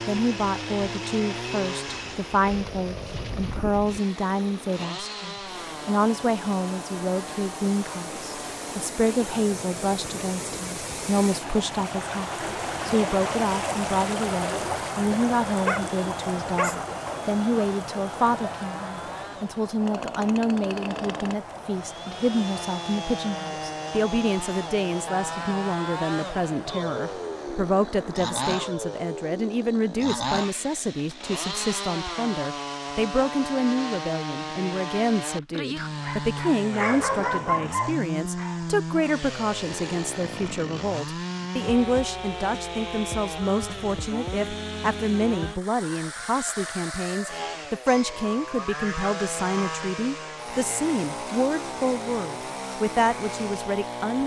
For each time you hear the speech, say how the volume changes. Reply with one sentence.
You can hear the speech from 0.1 to 54.2 s, at a steady volume.